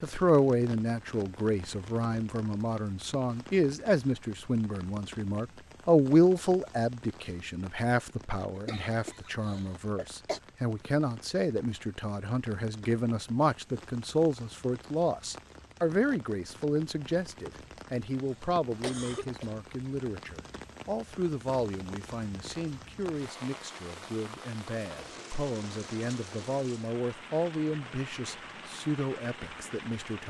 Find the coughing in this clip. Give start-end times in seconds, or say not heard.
8.6-10.4, 17.5-19.5.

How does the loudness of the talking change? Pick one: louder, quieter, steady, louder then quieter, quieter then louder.
quieter.